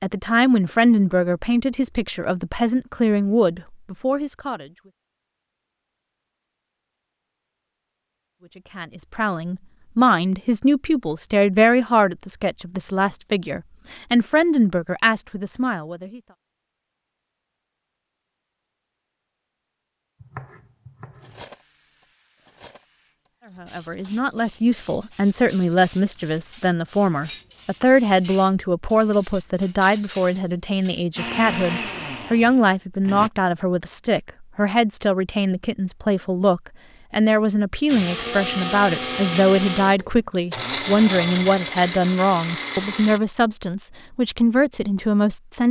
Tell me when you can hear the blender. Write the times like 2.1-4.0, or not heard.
31.1-33.3, 37.9-43.2.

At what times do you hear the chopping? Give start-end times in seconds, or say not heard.
20.2-21.4.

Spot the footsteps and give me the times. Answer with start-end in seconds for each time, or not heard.
not heard.